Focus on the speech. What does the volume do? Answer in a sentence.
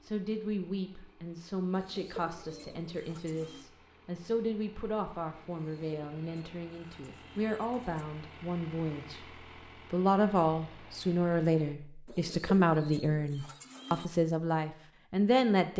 The volume of the speech goes up.